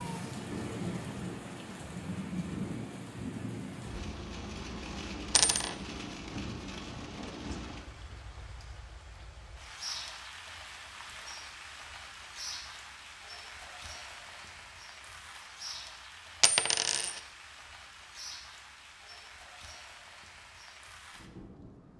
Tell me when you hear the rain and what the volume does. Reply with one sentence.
You can hear the rain from 0.0 to 21.9 s, getting quieter.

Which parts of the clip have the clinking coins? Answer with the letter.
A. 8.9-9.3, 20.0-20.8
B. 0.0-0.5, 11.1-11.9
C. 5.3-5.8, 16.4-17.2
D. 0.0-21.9
C.